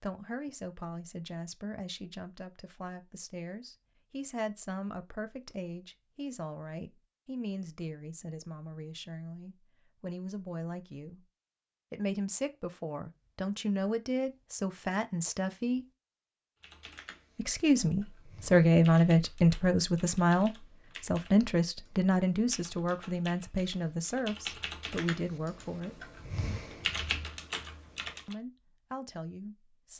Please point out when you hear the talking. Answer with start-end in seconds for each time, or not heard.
0.0-11.2, 11.9-15.8, 17.4-26.0, 28.2-29.9.